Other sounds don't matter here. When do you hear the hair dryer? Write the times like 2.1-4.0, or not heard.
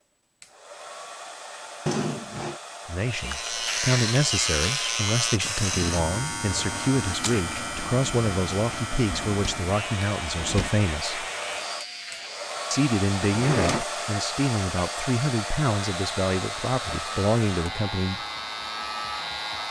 0.4-19.6.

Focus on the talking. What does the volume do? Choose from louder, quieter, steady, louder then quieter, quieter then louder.
steady.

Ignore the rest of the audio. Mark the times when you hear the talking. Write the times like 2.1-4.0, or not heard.
2.9-11.2, 12.7-18.2.